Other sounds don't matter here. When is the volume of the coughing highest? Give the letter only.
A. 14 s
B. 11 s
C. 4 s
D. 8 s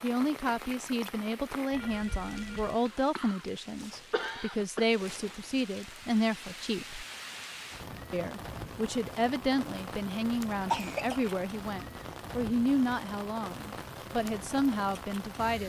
B.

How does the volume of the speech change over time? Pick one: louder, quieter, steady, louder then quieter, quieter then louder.
steady.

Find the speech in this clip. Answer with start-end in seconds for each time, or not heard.
0.0-7.0, 8.1-15.6.